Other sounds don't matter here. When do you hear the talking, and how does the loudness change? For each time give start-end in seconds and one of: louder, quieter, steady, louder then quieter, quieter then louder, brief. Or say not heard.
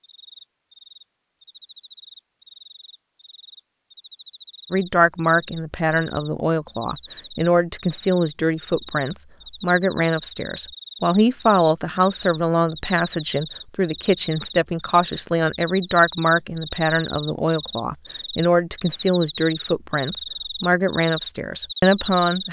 4.7-22.4 steady.